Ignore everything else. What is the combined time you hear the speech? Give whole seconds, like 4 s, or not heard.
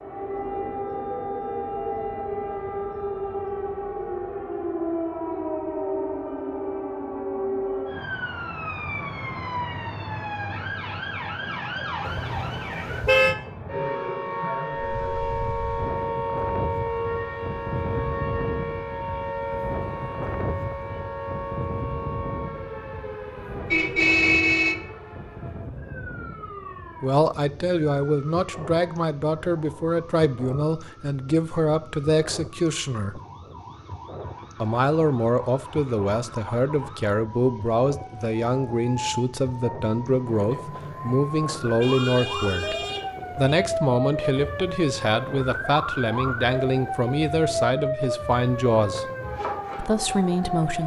21 s.